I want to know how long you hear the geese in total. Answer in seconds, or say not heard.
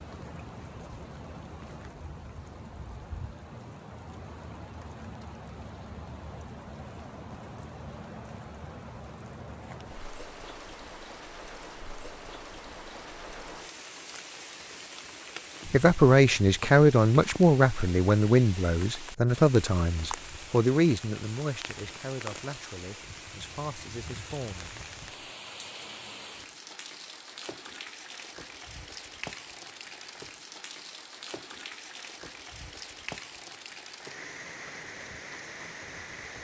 not heard.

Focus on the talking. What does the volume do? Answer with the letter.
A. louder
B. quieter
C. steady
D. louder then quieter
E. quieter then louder
B.